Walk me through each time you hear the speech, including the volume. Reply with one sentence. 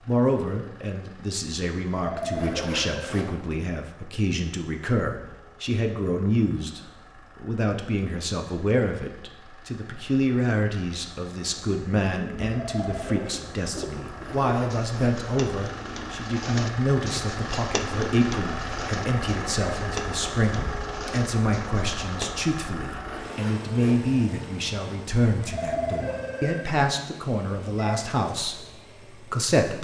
You can hear the speech from 0.1 to 29.7 s, at a steady volume.